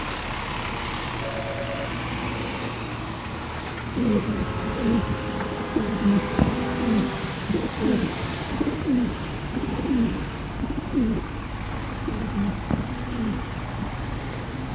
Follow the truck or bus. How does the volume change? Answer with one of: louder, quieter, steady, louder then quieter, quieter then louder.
steady.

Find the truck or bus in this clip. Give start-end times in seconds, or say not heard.
0.0-14.6.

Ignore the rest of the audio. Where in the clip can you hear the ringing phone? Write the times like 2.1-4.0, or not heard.
1.2-1.9.